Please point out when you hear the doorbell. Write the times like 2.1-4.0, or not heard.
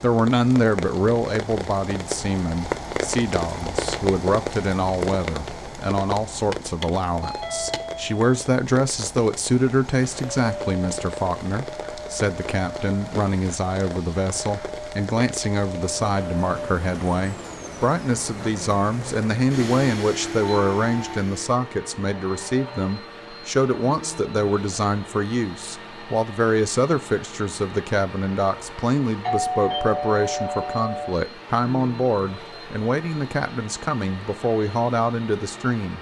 7.2-8.3, 20.4-21.2, 29.2-31.1.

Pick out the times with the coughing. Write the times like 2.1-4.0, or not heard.
not heard.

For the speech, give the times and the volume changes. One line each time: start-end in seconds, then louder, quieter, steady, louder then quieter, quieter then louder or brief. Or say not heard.
0.0-35.9 steady.